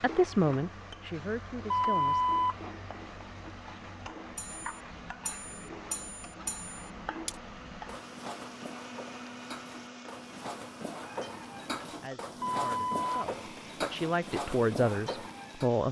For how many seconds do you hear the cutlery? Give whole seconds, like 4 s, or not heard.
11 s.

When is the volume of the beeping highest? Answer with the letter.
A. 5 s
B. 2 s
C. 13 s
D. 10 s
B.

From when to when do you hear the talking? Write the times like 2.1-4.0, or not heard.
0.0-2.2, 11.9-15.8.